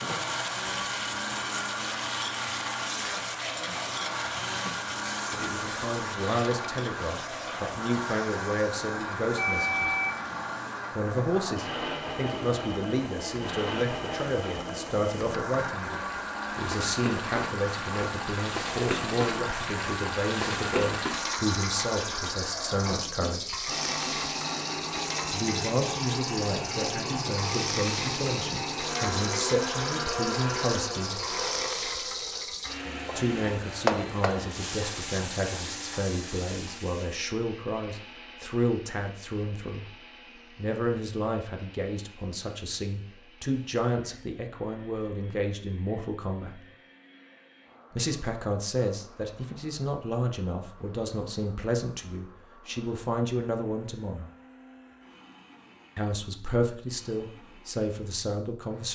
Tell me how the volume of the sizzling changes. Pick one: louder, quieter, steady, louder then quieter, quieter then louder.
quieter then louder.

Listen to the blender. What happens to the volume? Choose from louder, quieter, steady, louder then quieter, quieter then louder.
quieter.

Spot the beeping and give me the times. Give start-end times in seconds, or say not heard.
9.3-10.5.